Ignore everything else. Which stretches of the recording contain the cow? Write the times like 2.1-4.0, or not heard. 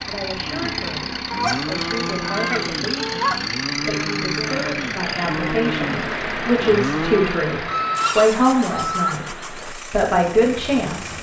0.3-7.5.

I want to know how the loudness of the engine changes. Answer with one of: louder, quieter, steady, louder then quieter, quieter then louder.
quieter.